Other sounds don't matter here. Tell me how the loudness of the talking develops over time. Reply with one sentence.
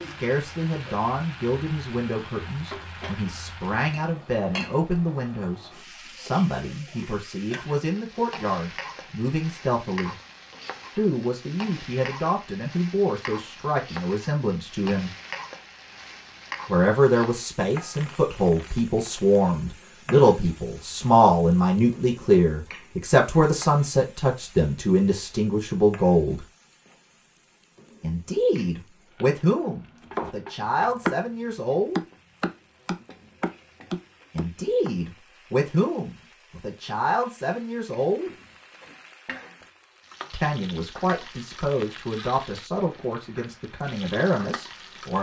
The volume of the talking goes up, then down.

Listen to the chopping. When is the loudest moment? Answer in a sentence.
The volume of the chopping peaks at 31 seconds.